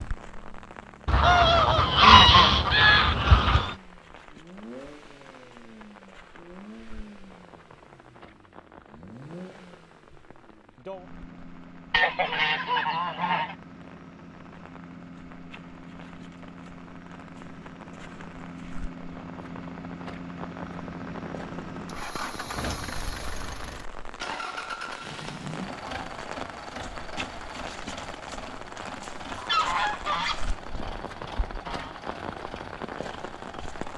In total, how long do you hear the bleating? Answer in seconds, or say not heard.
not heard.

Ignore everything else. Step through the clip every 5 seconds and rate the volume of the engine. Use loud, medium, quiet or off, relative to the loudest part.
medium, medium, medium, medium, loud, loud, medium.